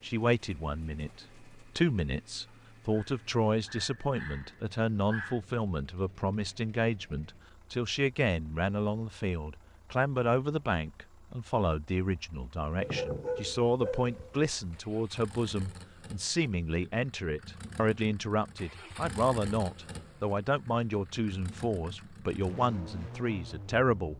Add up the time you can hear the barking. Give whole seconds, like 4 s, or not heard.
4 s.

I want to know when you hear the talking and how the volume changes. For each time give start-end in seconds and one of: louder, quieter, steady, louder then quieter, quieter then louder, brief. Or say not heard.
0.0-24.1 steady.